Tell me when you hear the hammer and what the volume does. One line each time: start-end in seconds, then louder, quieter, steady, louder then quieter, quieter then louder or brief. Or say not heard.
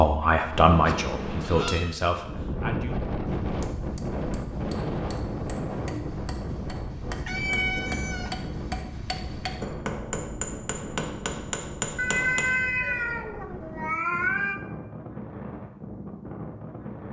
3.4-12.4 louder.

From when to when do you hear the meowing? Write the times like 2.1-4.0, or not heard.
0.6-1.9, 7.2-8.3, 11.9-14.6.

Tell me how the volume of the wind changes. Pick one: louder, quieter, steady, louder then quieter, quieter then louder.
quieter.